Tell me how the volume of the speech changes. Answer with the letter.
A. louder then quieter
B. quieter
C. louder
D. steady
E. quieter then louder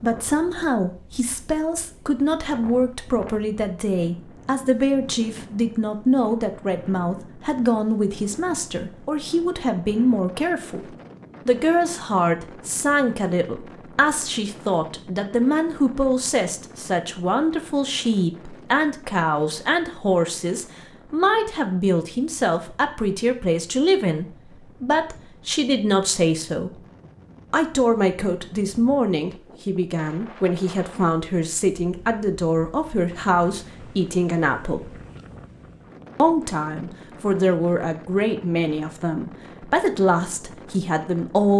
D.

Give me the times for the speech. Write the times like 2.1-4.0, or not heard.
0.0-26.8, 27.5-35.0, 36.1-41.5.